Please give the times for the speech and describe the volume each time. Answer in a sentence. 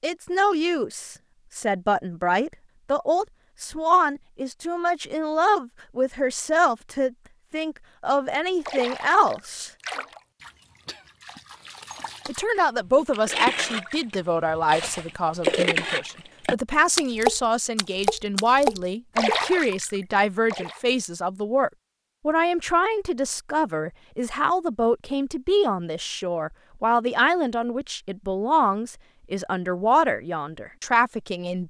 You can hear the speech from 0.0 to 9.7 s, at a steady volume; and from 12.2 to 31.6 s, at a steady volume.